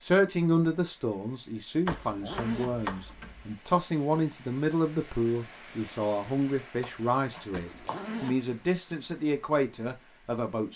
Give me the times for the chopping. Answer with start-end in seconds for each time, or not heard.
1.9-3.5, 6.8-8.1.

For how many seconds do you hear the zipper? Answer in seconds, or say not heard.
2 s.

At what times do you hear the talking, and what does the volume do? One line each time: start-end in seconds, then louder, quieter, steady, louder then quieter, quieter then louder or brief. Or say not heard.
0.0-10.7 steady.